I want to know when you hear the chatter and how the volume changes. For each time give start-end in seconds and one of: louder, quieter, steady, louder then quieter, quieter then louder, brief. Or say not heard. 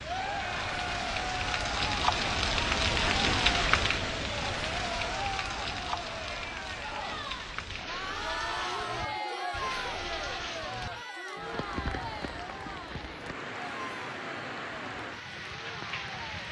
0.0-16.4 quieter.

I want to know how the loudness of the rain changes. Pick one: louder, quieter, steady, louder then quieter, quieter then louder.
quieter.